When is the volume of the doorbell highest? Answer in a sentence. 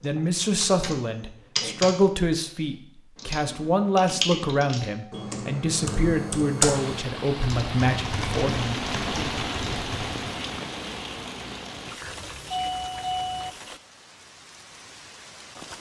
The loudest moment of the doorbell is at 13 seconds.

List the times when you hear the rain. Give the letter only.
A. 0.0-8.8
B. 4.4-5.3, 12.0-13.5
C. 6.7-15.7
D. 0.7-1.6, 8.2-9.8
C.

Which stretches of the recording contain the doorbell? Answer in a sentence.
You can hear the doorbell from 4.4 to 5.3 s and from 12.0 to 13.5 s.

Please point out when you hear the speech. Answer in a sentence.
You can hear the speech from 0.0 to 8.8 s.